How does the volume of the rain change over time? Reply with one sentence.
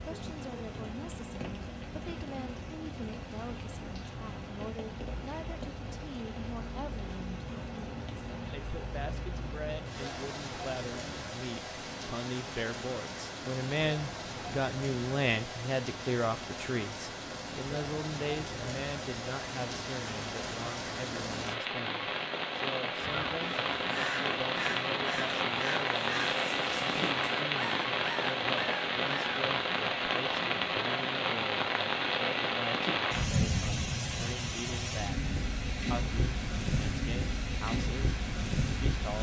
The loudness of the rain goes up.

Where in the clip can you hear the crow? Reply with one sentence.
The crow can be heard from 23.0 to 29.4 s.